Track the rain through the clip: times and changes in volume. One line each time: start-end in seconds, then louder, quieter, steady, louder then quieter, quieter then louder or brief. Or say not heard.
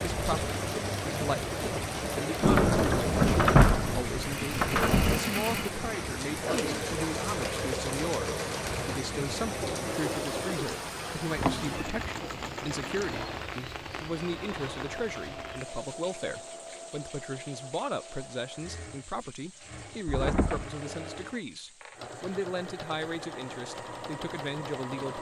0.0-25.1 quieter.